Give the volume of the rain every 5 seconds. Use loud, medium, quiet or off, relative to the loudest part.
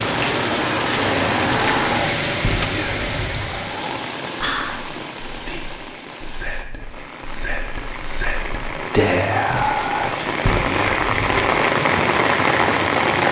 loud, quiet, loud.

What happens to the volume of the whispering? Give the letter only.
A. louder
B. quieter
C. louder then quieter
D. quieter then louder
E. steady
D.